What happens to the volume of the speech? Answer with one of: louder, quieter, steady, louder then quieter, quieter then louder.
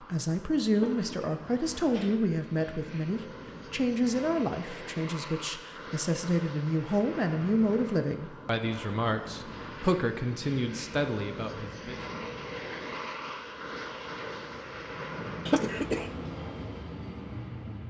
steady.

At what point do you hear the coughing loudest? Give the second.
16 s.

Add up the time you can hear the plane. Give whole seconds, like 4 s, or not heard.
18 s.